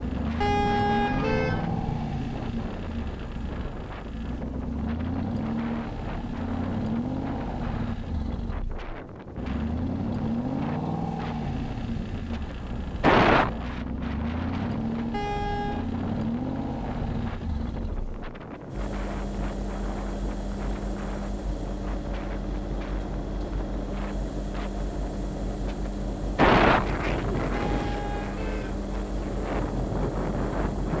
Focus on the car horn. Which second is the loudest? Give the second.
1 s.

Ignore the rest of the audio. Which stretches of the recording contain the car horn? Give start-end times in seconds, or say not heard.
0.4-2.0, 15.1-15.8, 27.6-28.8.